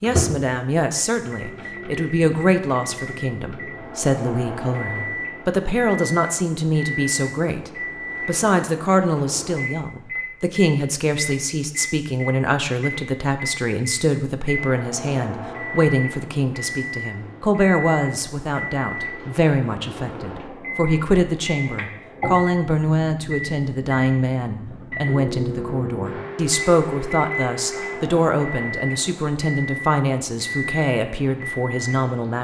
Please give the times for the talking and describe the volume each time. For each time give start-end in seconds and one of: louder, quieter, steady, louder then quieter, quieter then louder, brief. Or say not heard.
0.0-32.3 steady.